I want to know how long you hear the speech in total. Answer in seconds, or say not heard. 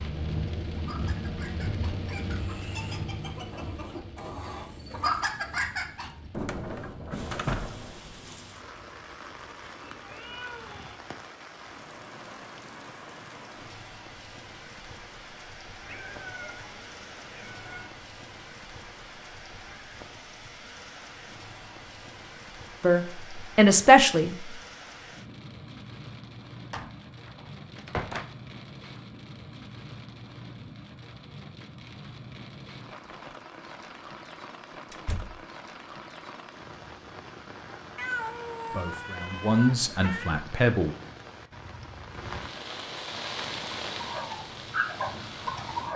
4 s.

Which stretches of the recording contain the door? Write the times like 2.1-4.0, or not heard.
6.3-8.2, 26.7-28.3, 34.9-35.5.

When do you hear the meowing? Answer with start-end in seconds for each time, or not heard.
9.7-11.0, 15.8-17.9, 38.0-40.5.